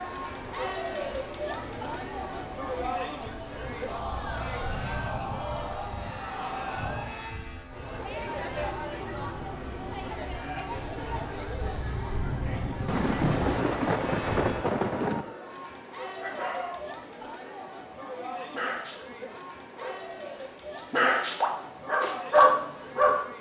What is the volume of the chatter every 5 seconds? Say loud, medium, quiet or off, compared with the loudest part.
loud, loud, loud, medium, medium.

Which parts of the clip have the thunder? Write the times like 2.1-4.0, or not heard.
12.8-15.3.